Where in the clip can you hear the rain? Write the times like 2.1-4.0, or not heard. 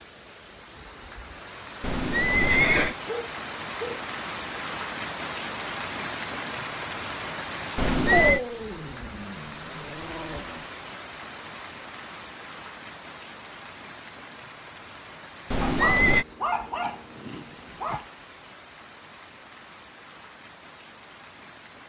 0.0-21.8.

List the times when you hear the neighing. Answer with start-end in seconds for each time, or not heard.
1.8-3.0, 7.8-8.4, 15.5-16.2.